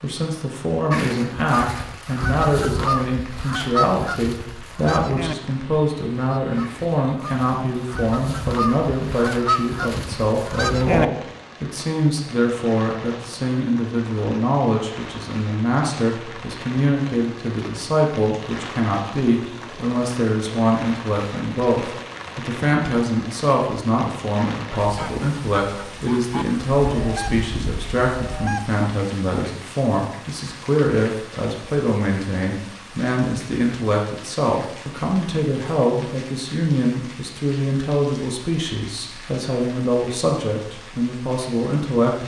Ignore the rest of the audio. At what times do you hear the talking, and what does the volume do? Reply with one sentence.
The talking can be heard from 0.0 to 42.2 s, at a steady volume.